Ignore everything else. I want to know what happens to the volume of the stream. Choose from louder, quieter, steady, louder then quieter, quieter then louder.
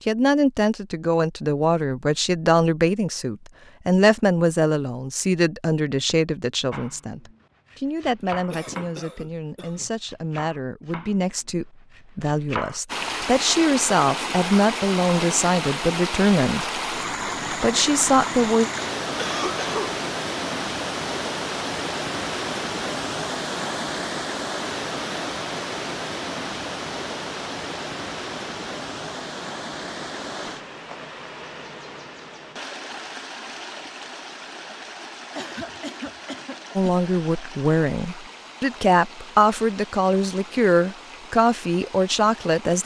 quieter.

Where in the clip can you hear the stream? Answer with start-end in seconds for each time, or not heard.
12.8-42.8.